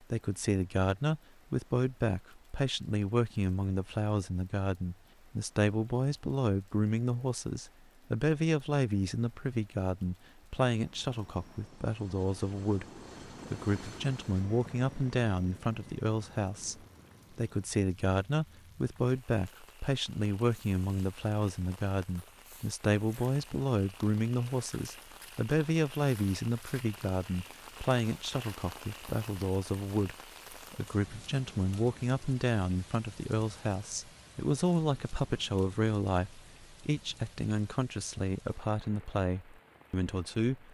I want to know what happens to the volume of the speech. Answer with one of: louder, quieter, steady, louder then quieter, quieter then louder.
steady.